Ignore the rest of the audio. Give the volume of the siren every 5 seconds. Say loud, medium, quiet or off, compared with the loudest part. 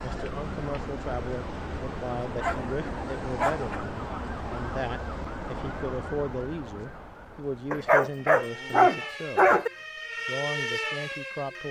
loud, medium, loud.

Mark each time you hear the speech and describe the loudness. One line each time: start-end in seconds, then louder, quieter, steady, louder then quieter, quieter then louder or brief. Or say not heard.
0.0-9.6 steady
10.2-11.6 brief.